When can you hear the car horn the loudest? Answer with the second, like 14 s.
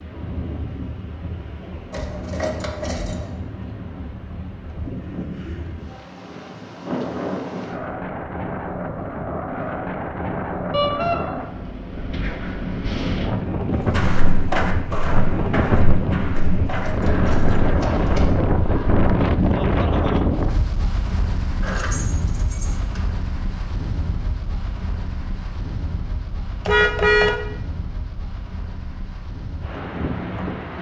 27 s.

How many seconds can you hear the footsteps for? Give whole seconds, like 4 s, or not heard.
5 s.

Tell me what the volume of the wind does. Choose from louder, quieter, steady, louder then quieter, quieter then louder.
louder then quieter.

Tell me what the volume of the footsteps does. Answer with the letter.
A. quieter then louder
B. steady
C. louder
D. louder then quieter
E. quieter
E.